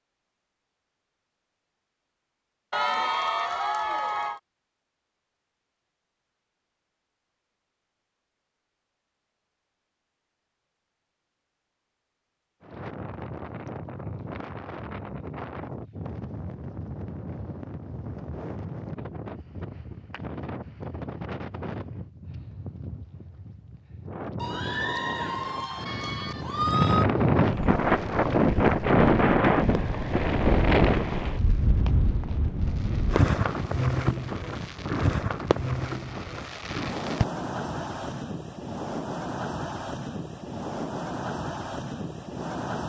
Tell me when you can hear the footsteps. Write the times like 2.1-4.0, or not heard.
not heard.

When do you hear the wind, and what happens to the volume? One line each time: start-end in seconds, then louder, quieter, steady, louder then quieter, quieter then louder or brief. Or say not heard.
12.6-42.8 louder then quieter.